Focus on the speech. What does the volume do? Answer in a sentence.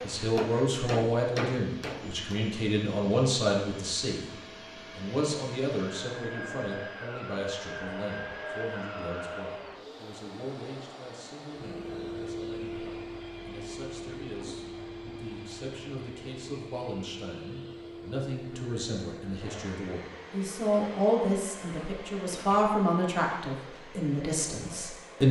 The loudness of the speech goes down, then up.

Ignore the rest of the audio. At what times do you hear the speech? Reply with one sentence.
You can hear the speech from 0.0 to 4.3 s and from 5.0 to 25.2 s.